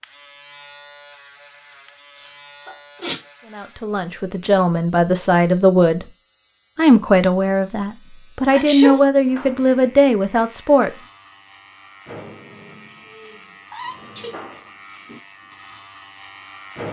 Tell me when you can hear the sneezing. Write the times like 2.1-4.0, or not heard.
2.6-3.1, 8.5-9.1, 13.7-14.3.